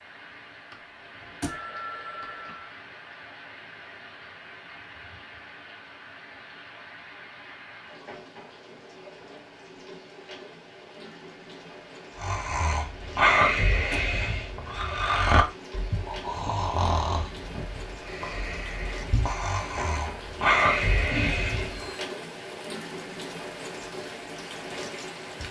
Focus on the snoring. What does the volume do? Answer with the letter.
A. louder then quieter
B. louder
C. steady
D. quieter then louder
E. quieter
D.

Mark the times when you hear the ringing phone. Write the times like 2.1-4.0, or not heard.
0.7-2.7, 21.1-22.1.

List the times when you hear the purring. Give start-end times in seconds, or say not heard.
not heard.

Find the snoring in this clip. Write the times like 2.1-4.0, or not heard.
12.2-21.9.